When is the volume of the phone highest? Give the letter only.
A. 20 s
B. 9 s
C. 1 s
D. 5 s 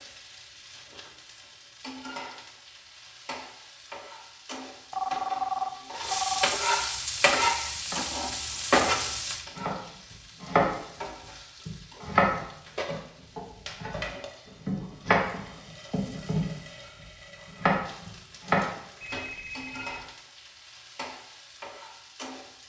D.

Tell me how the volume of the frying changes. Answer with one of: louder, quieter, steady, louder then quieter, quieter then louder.
louder then quieter.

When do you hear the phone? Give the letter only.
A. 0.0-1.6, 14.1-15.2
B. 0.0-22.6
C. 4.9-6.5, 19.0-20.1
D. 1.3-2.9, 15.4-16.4
C.